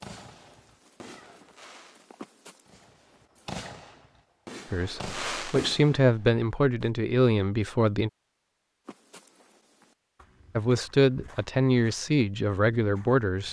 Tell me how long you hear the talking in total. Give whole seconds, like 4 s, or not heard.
6 s.